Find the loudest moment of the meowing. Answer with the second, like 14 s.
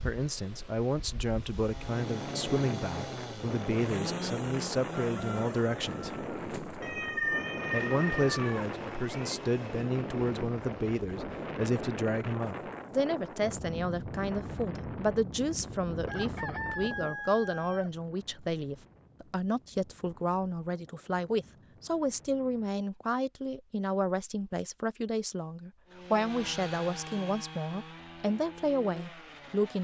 7 s.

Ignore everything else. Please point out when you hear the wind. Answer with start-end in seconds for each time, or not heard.
0.0-22.7.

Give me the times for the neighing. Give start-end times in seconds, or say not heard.
not heard.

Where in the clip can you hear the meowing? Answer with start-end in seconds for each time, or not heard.
6.8-9.4.